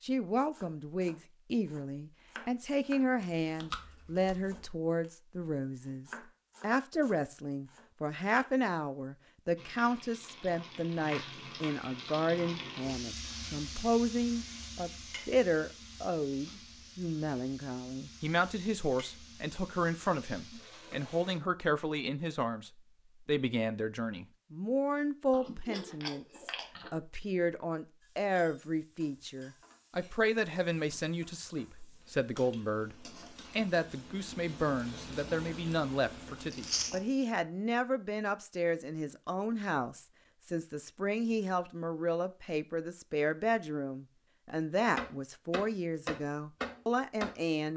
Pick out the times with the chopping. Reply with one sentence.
The chopping can be heard from 0.5 to 8.5 s and from 45.0 to 47.7 s.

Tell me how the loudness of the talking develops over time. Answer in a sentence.
The volume of the talking stays about the same.